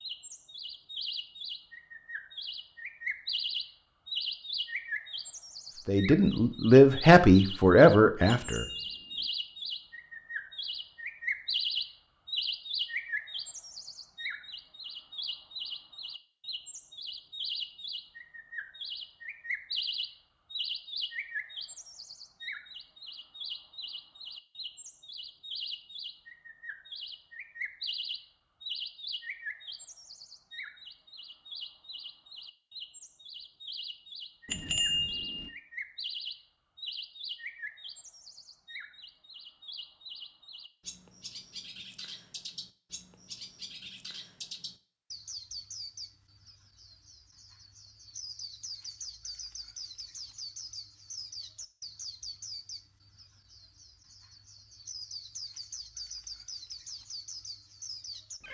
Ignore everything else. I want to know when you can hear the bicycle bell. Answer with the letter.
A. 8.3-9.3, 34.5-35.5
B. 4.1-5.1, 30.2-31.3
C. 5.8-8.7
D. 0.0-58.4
A.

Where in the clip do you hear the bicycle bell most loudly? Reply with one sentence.
The loudest moment of the bicycle bell is at 35 seconds.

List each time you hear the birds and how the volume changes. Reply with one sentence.
You can hear the birds from 0.0 to 58.4 s, getting quieter.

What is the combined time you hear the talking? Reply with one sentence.
You can hear the talking for 3 seconds altogether.